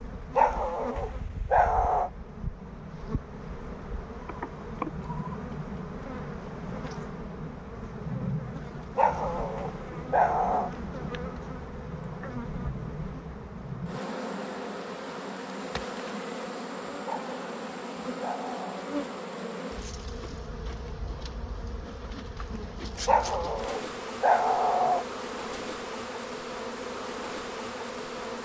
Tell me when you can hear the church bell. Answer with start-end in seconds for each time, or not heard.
not heard.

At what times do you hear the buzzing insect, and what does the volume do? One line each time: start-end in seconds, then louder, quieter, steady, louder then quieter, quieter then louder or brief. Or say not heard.
0.0-28.3 steady.